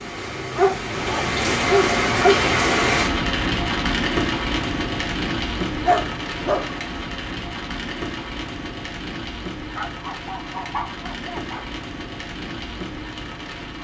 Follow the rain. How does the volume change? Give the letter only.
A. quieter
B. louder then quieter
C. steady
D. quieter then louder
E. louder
A.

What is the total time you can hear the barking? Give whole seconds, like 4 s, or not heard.
5 s.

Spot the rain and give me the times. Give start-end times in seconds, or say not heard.
0.0-13.7.